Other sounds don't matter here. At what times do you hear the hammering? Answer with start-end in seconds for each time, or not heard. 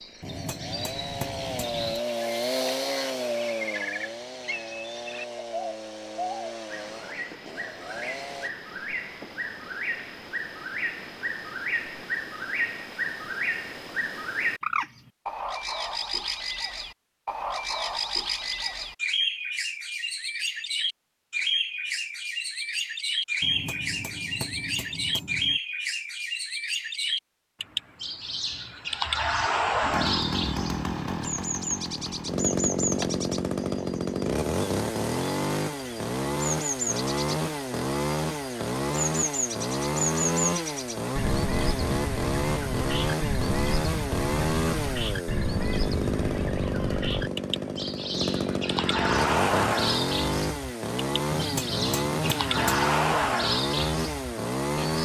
0.2-2.0, 23.4-25.6, 51.3-52.9.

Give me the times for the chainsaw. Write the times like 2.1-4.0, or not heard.
0.0-8.5, 29.9-55.0.